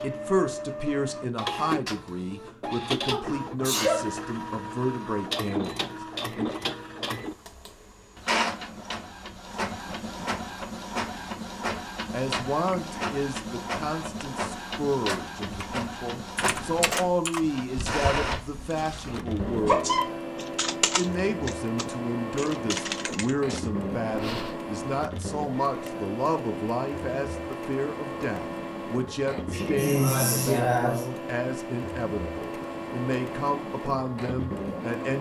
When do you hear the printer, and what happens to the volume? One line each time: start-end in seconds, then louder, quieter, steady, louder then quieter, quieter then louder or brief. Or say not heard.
0.0-35.1 steady.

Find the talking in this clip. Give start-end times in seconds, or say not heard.
0.0-6.5, 12.1-20.0, 20.8-35.1.